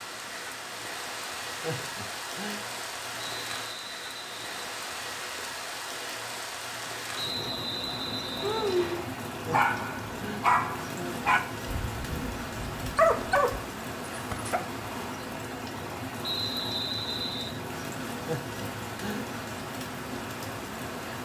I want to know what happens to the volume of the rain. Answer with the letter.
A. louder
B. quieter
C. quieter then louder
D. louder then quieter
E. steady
E.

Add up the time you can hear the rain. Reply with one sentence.
You can hear the rain for 21 seconds altogether.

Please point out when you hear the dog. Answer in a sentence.
You can hear the dog from 8.4 to 14.6 s.